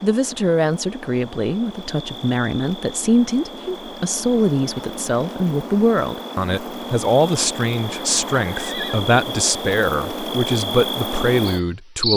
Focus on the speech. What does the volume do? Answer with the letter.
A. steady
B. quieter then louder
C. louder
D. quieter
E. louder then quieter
A.